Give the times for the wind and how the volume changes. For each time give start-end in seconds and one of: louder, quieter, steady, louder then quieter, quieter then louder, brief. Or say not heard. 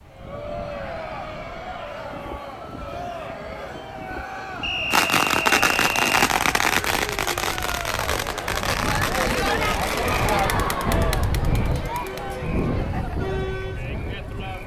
0.0-14.6 louder.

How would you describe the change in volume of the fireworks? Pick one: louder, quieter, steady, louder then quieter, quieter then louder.
quieter.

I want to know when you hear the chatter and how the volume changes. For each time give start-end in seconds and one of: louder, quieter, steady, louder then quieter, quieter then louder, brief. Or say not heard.
0.0-14.6 louder then quieter.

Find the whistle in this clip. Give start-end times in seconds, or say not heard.
4.6-6.0.